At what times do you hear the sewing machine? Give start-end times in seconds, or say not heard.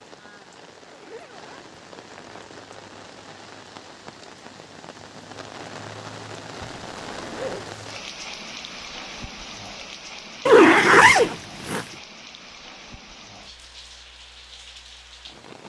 not heard.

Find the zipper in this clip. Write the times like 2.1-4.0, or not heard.
0.8-2.4, 6.7-7.8, 10.4-11.8.